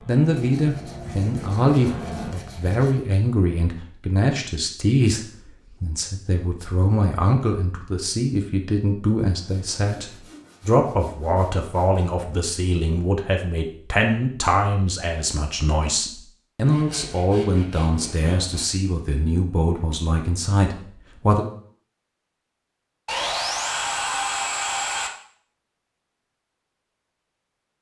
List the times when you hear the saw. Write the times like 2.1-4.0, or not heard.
0.3-3.0, 9.2-12.2, 16.6-18.6, 23.1-25.1.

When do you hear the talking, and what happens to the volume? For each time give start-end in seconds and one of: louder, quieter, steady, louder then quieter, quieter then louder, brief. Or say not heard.
0.1-21.4 steady.